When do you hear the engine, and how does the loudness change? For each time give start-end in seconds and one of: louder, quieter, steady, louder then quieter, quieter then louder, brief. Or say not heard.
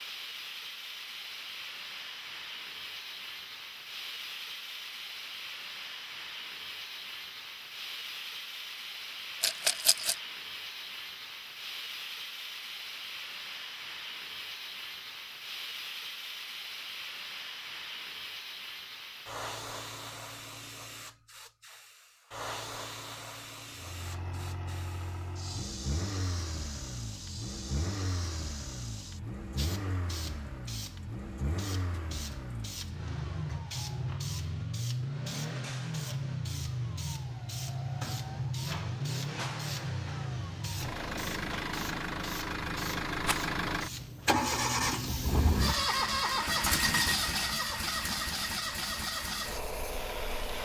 23.8-50.6 louder.